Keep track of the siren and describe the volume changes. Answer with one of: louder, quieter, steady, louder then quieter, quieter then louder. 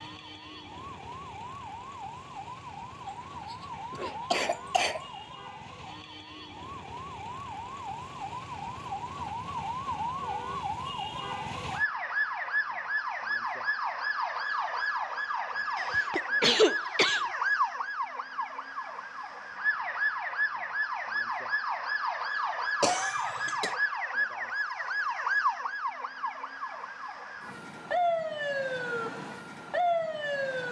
louder.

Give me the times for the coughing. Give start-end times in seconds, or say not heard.
3.0-5.0, 15.8-17.2, 22.8-23.8.